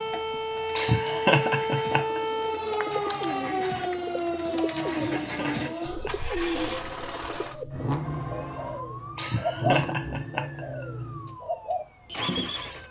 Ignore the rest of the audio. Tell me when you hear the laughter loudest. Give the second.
1 s.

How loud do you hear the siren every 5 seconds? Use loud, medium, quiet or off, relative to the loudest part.
loud, medium, quiet.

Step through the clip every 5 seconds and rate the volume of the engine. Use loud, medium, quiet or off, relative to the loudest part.
medium, loud, loud.